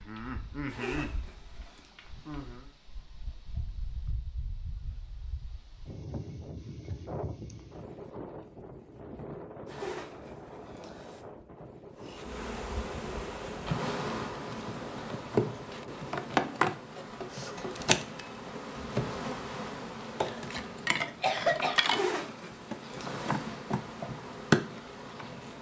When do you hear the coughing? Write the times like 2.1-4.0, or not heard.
20.2-21.8.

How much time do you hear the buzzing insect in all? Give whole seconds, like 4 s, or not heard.
16 s.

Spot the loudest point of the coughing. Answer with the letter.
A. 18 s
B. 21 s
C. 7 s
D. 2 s
B.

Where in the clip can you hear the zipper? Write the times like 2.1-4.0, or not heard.
0.7-1.9, 9.7-11.2, 21.9-23.4.